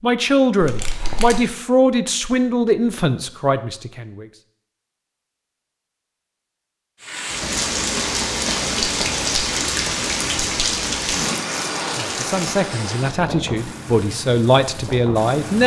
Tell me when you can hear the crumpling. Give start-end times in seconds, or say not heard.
0.6-1.4, 11.1-12.6.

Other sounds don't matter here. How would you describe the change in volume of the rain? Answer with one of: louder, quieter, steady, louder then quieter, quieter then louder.
quieter.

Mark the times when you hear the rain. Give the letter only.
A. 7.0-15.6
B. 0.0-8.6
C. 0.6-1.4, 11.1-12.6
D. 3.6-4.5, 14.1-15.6
A.